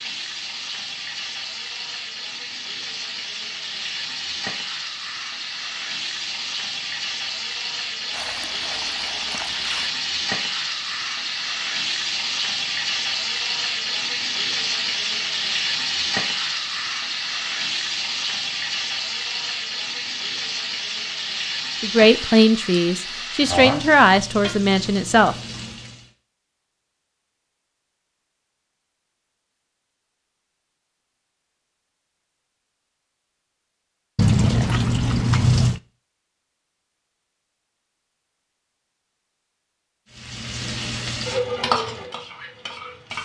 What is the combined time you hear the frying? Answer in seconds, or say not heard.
29 s.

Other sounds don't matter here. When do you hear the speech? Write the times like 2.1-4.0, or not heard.
21.8-25.4.